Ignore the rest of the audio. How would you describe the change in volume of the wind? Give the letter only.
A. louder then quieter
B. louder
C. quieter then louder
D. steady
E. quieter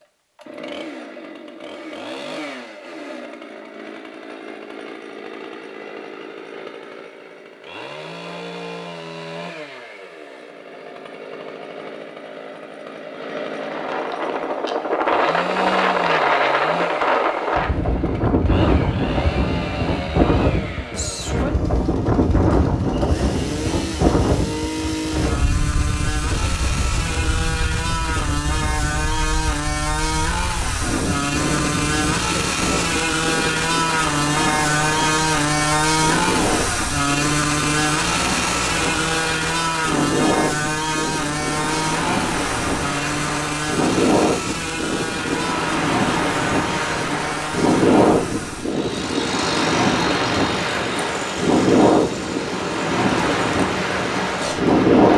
C.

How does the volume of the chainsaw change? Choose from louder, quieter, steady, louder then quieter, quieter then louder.
louder then quieter.